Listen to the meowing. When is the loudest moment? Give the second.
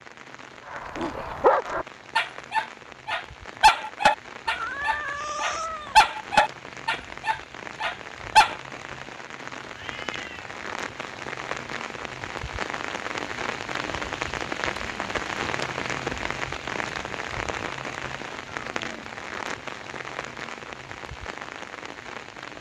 5 s.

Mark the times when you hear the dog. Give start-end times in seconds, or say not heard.
0.7-8.6.